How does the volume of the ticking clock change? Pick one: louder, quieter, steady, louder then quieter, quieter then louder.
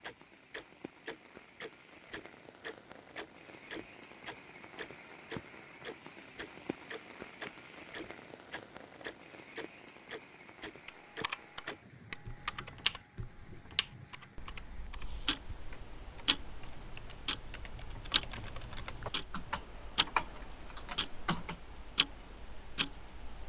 louder then quieter.